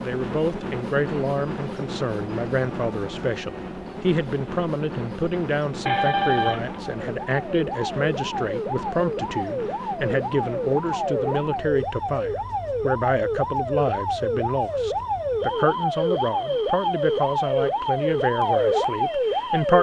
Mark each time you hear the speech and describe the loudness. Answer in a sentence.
The speech can be heard from 0.0 to 19.7 s, at a steady volume.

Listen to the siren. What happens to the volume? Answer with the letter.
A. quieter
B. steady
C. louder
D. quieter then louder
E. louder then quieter
C.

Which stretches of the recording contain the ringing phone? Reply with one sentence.
The ringing phone can be heard from 5.8 to 6.8 s.